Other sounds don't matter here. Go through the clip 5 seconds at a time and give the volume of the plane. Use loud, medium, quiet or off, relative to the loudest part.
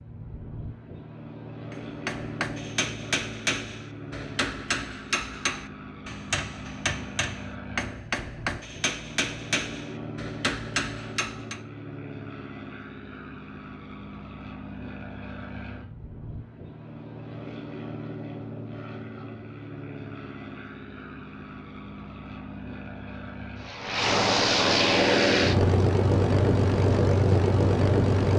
quiet, quiet, quiet, quiet, medium, loud.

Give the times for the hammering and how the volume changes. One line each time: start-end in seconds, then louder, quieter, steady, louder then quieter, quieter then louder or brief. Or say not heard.
1.7-11.6 steady.